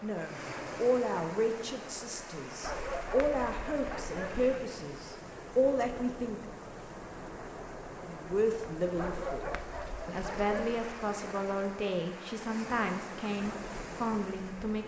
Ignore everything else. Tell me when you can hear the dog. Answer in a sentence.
You can hear the dog from 2.6 to 4.6 s and from 8.9 to 10.8 s.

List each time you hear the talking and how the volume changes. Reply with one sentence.
You can hear the talking from 0.0 to 6.4 s, getting quieter then louder; and from 8.0 to 14.8 s, at a steady volume.